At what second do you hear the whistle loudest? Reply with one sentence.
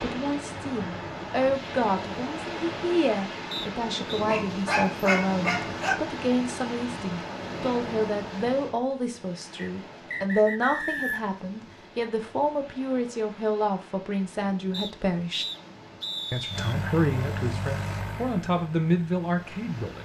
The loudest moment of the whistle is at 11 seconds.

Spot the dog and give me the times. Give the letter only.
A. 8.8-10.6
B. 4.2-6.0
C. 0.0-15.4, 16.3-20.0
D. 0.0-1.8
B.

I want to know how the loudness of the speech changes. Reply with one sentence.
The loudness of the speech stays about the same.